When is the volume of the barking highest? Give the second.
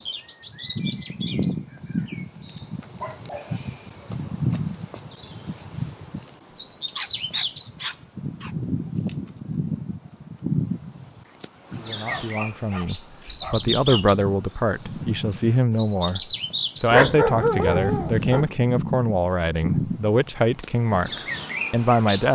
17 s.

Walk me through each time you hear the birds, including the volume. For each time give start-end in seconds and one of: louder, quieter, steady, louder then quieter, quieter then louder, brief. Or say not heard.
0.0-22.3 steady.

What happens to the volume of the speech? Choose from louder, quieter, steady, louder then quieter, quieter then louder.
steady.